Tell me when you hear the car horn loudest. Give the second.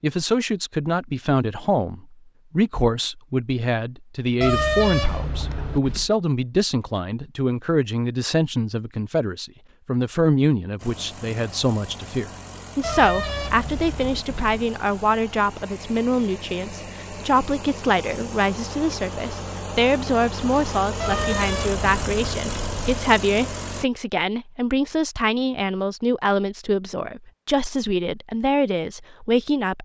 5 s.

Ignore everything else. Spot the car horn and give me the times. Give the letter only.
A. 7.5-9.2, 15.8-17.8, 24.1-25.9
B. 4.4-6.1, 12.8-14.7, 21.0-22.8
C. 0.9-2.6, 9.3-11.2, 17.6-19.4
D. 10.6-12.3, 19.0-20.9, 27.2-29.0
B.